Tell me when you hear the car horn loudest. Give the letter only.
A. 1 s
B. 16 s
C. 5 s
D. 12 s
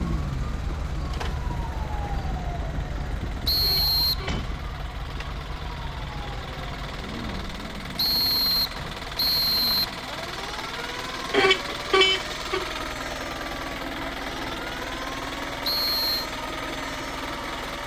D.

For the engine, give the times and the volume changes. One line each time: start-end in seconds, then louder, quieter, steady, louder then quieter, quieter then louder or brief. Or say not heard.
0.0-17.8 louder.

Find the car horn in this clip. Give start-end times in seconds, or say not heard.
3.6-4.5, 11.3-12.7.